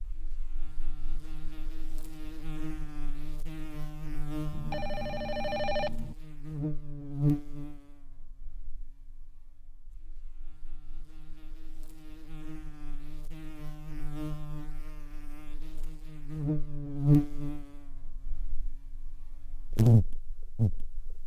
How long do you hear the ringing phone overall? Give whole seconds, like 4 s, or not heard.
2 s.